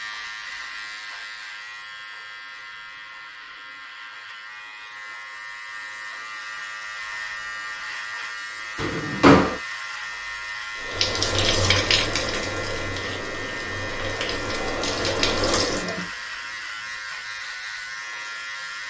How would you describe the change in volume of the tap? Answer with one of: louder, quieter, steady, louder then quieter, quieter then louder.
quieter then louder.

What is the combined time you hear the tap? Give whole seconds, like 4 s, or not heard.
5 s.